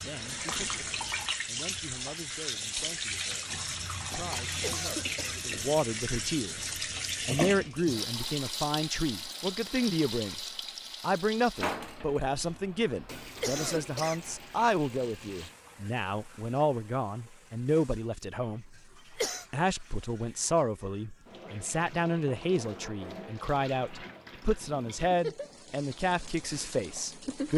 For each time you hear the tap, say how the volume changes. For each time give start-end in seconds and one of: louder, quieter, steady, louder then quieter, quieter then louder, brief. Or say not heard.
0.0-27.5 quieter then louder.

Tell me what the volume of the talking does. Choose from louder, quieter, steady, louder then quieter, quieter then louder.
louder.